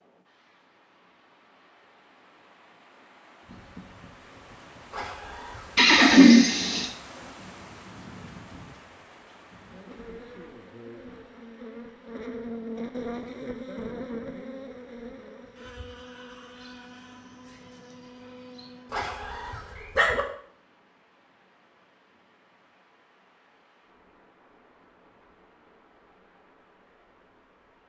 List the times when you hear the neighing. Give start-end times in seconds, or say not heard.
5.8-6.9.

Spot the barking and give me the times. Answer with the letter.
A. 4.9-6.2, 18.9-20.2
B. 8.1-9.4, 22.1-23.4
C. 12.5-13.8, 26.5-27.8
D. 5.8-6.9
A.